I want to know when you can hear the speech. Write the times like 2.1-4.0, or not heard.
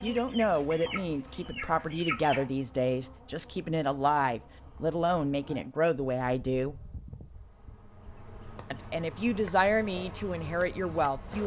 0.0-6.8, 8.7-11.4.